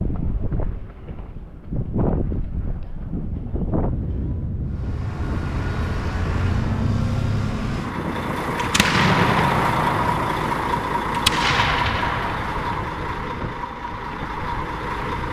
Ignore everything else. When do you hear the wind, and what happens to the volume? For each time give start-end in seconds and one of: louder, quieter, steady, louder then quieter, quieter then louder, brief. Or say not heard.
0.0-15.2 quieter.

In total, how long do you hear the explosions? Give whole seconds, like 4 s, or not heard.
4 s.